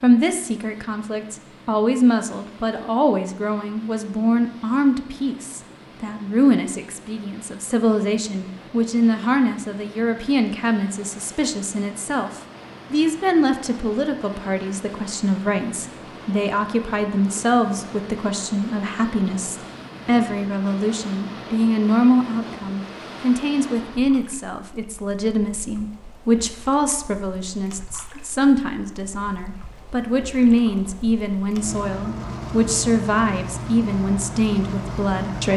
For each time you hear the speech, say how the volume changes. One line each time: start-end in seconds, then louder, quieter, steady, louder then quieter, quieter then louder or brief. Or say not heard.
0.0-35.5 steady.